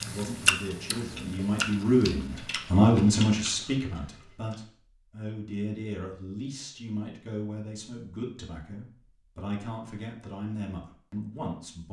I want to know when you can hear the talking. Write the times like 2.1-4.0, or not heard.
0.0-11.8.